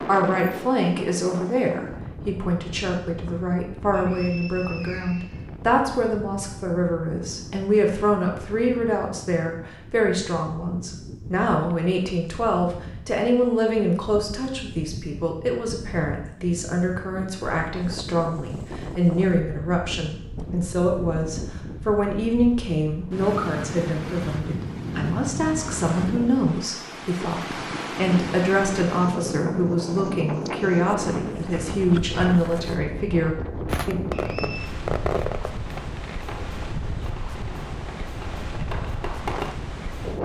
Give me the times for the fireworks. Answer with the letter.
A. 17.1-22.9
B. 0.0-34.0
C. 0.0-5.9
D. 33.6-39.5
D.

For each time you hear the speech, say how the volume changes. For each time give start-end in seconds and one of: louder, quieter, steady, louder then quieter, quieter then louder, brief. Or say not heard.
0.0-34.0 steady.